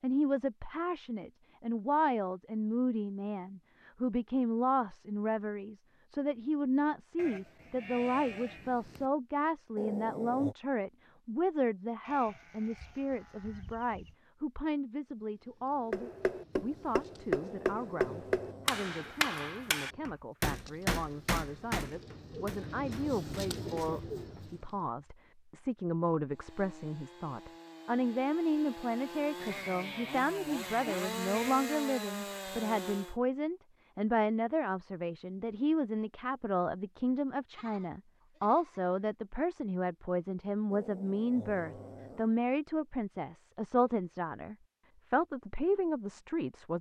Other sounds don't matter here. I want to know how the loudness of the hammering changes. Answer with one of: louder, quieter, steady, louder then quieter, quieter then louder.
quieter.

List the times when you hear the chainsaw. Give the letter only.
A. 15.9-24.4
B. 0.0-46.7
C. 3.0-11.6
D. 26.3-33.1
D.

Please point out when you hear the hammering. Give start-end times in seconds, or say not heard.
15.9-24.4.